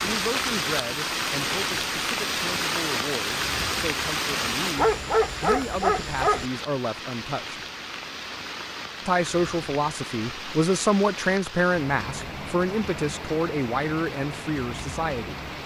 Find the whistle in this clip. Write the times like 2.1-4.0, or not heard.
not heard.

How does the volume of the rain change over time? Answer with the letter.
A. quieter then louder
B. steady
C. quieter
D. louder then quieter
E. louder
C.